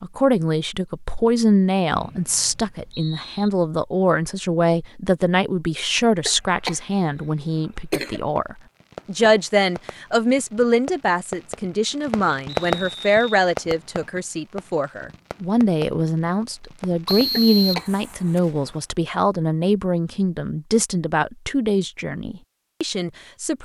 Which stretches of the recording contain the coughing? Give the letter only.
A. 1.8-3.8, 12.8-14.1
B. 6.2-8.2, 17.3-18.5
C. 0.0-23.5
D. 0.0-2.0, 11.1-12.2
B.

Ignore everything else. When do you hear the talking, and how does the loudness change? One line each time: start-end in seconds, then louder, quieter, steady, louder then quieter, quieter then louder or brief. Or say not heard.
0.0-23.5 steady.